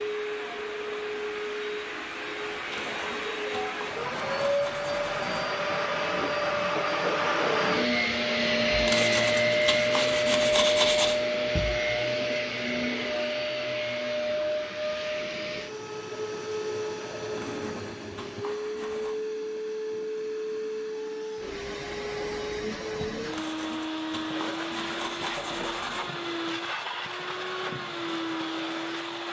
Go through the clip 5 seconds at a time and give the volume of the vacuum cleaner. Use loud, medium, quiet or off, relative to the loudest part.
medium, loud, loud, medium, medium, medium.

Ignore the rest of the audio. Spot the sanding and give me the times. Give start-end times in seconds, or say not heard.
2.7-5.4, 8.8-11.2, 17.4-19.1, 23.3-26.2.